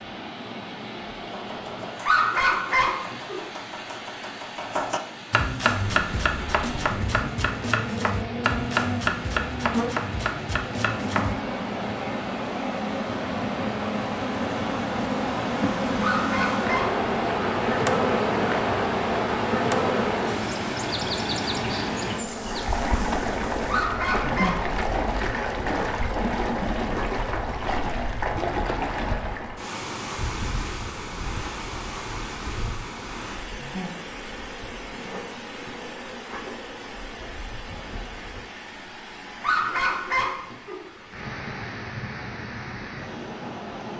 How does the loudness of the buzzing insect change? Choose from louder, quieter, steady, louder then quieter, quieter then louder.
louder then quieter.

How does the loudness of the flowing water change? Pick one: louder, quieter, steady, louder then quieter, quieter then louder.
louder then quieter.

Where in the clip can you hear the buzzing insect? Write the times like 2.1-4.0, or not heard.
5.7-38.5.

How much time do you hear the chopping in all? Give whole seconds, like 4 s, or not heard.
10 s.